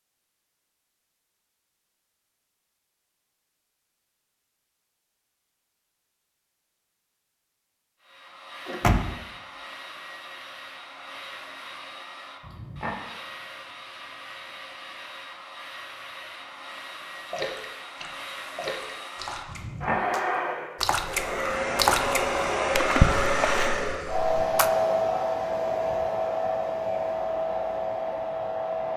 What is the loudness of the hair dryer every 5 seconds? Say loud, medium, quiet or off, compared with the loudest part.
off, quiet, quiet, medium, loud, loud.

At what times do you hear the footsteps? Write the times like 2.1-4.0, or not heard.
not heard.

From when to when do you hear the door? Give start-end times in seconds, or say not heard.
8.7-9.2.